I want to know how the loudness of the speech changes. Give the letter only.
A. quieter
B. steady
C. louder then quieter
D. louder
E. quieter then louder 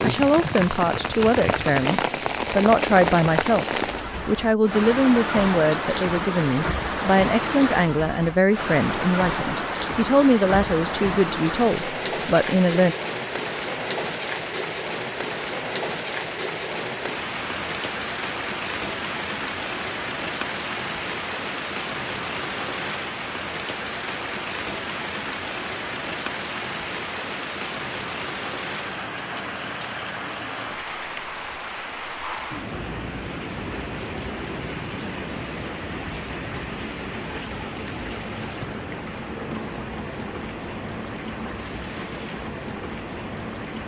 B.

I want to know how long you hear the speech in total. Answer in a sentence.
You can hear the speech for 12 seconds altogether.